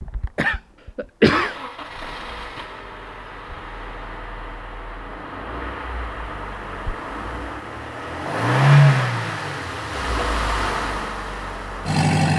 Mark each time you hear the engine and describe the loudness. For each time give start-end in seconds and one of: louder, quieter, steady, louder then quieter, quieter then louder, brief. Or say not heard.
0.0-12.3 louder then quieter.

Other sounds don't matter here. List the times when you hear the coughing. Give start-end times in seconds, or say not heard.
0.3-1.6.